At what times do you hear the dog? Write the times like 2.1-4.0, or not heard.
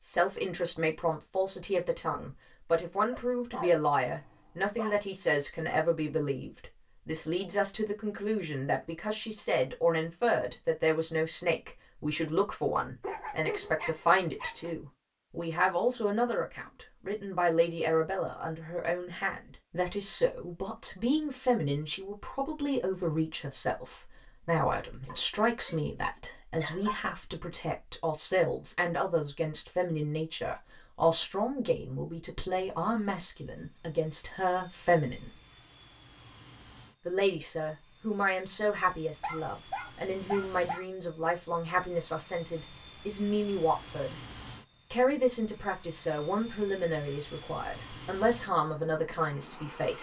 3.1-5.0, 13.0-14.8, 25.1-25.8, 26.6-27.1, 39.2-40.9.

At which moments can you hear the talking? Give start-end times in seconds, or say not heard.
0.0-35.3, 37.0-44.1, 44.9-49.9.